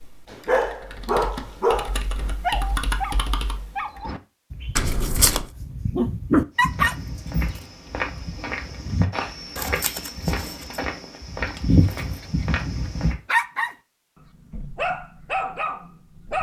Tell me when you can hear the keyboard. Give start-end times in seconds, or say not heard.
0.0-4.0.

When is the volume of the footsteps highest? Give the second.
12 s.